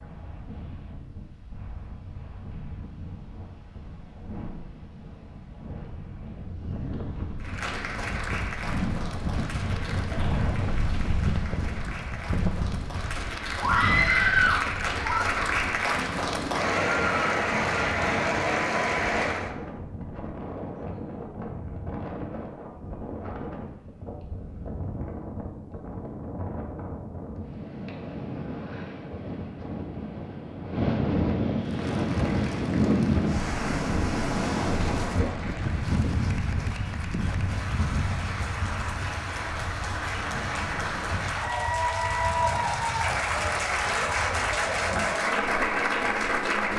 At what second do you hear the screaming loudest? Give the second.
14 s.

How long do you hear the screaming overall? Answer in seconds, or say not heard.
2 s.